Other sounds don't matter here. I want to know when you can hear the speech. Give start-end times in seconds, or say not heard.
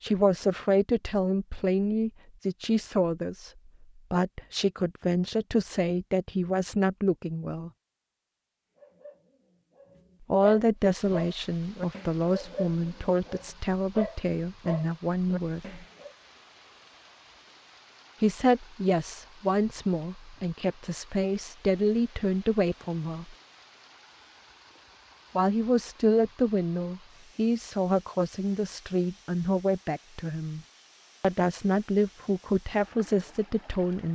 0.0-3.5, 4.1-7.7, 10.3-15.8, 18.2-23.4, 25.4-30.6, 31.2-34.0.